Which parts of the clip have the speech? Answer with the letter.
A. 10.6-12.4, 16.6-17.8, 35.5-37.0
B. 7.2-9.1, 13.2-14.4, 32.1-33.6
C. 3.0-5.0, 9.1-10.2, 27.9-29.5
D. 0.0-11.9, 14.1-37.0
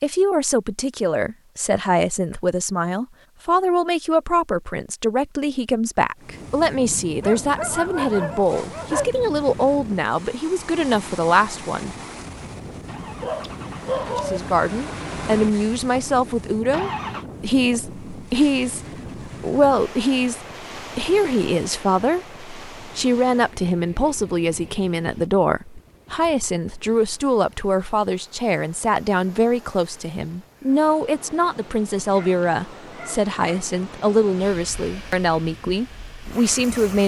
D.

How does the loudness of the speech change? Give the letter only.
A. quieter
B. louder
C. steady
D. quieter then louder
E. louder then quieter
C.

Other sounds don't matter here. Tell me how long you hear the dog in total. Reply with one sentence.
The dog can be heard for 5 seconds in total.